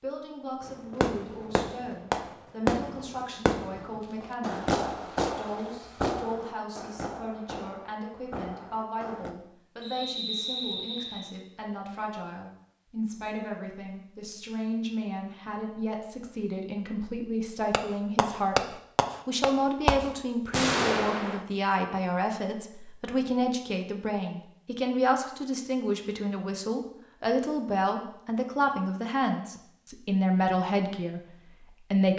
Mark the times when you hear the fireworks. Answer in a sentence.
The fireworks can be heard from 0.7 to 9.3 s and from 17.7 to 21.4 s.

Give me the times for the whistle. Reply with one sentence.
The whistle can be heard from 9.8 to 11.3 s.